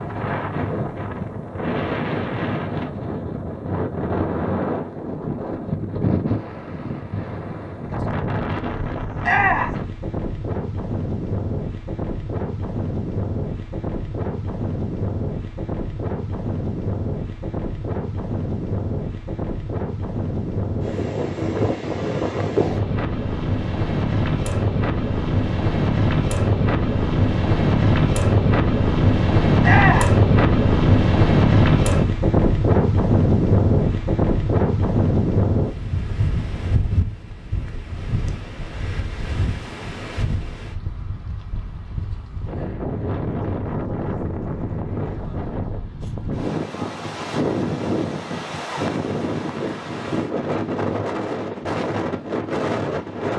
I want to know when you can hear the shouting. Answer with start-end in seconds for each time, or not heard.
9.2-9.8, 29.6-30.1.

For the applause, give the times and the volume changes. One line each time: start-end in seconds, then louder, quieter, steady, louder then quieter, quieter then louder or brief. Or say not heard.
not heard.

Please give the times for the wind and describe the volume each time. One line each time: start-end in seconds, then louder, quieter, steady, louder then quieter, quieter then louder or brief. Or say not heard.
0.0-53.3 louder then quieter.